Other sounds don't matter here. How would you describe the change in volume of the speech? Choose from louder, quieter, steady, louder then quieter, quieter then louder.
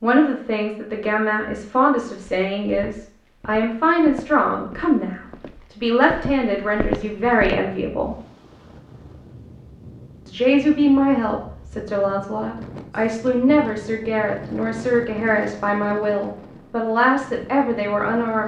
steady.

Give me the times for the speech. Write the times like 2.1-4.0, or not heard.
0.0-8.2, 10.2-18.4.